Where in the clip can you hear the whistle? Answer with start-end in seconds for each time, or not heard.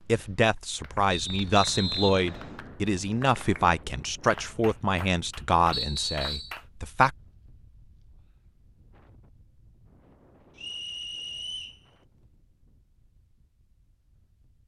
1.1-2.6, 5.7-6.5, 10.6-11.8.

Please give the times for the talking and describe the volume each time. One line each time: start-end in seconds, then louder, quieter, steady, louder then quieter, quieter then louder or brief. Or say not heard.
0.1-7.2 steady.